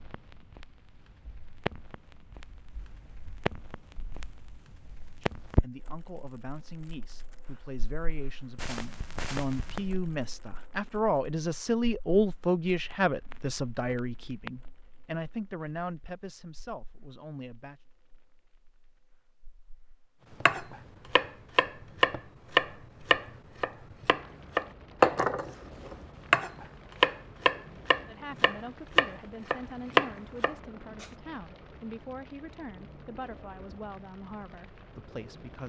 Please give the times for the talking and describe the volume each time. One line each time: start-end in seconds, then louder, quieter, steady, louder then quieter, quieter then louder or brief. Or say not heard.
5.4-17.8 louder then quieter
28.1-35.6 steady.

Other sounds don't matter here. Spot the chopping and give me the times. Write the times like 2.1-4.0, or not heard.
20.4-31.1.